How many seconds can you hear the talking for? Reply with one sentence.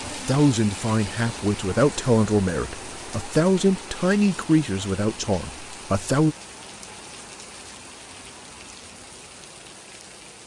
You can hear the talking for 6 seconds altogether.